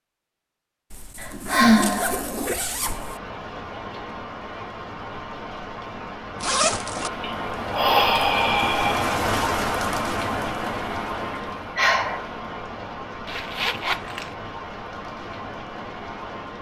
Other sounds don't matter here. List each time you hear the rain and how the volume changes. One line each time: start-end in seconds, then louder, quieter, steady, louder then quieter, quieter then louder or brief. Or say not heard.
2.8-16.5 louder then quieter.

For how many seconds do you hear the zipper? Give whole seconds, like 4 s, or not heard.
4 s.